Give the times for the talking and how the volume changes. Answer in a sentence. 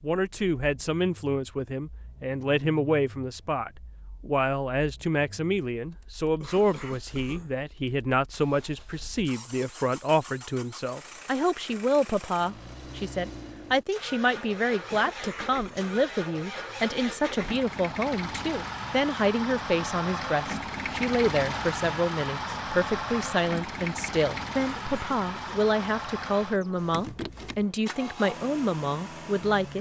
The talking can be heard from 0.0 to 29.7 s, at a steady volume.